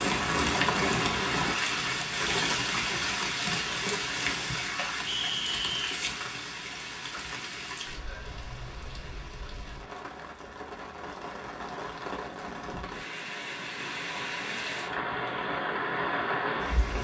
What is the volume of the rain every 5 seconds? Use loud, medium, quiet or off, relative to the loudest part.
loud, medium, medium, loud.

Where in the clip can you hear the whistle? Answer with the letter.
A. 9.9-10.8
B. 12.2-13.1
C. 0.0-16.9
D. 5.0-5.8
D.